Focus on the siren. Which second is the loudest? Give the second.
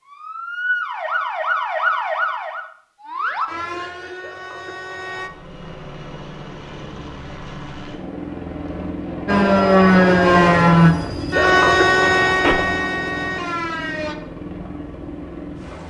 10 s.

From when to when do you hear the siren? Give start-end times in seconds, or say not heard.
0.0-5.3, 9.2-14.2.